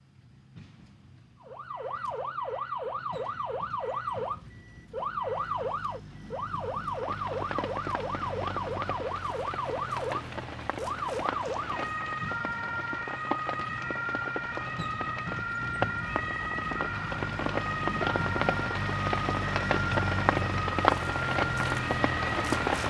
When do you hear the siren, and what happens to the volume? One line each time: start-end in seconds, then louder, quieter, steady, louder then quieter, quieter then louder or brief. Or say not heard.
1.4-22.8 steady.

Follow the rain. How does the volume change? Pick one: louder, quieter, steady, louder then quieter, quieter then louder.
louder.